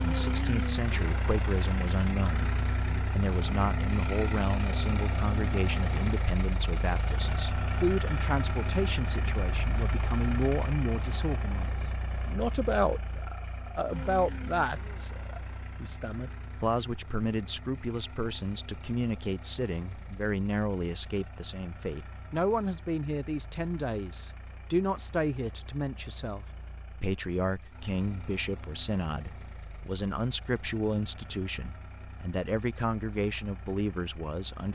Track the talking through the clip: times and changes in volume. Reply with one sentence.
The talking can be heard briefly from 0.0 to 2.5 s; and from 3.1 to 34.7 s, at a steady volume.